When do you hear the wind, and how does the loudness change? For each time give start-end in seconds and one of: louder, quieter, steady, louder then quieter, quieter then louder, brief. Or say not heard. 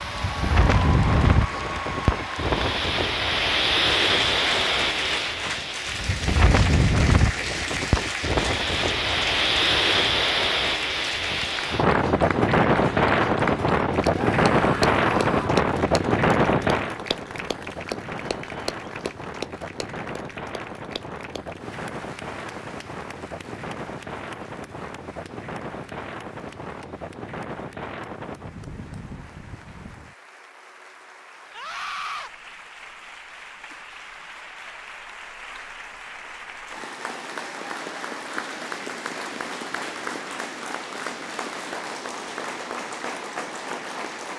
0.0-30.1 quieter.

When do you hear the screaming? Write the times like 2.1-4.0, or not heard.
14.1-15.5, 31.5-32.3.